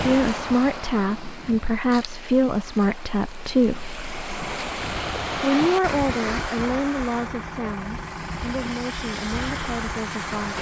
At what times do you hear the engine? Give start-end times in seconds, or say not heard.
4.8-10.5.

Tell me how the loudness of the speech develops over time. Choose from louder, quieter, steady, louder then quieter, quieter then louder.
quieter.